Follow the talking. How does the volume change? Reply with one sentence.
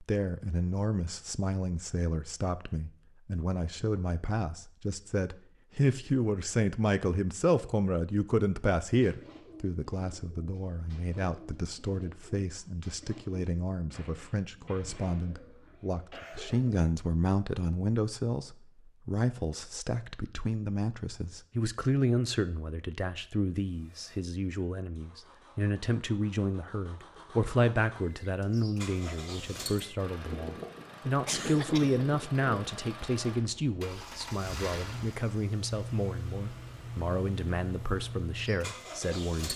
The loudness of the talking stays about the same.